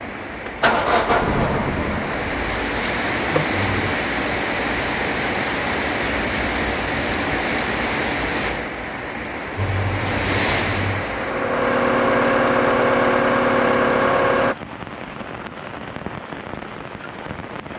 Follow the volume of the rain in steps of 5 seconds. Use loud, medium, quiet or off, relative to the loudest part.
loud, loud, loud, medium.